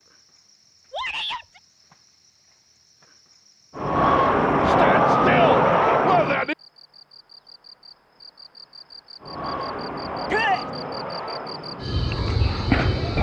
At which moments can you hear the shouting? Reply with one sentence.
The shouting can be heard from 0.9 to 1.6 s, from 4.7 to 6.5 s and from 10.2 to 10.7 s.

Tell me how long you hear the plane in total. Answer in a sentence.
You can hear the plane for 7 seconds altogether.